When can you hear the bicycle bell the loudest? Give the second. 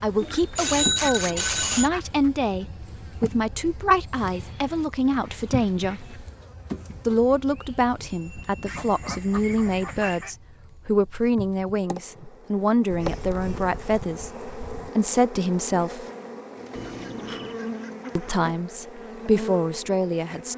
1 s.